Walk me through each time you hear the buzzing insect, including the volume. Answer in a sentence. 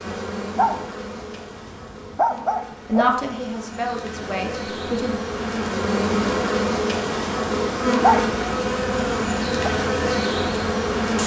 The buzzing insect can be heard from 0.0 to 11.2 s, getting louder.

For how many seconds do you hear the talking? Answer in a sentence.
You can hear the talking for 2 seconds altogether.